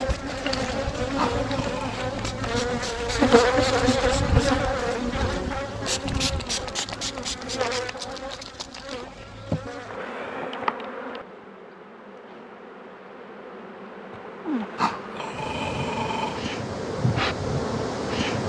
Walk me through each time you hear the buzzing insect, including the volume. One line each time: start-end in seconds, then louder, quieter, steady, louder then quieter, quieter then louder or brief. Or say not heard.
0.0-18.4 quieter then louder.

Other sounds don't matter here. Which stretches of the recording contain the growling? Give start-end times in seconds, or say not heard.
1.1-2.1, 14.8-16.4.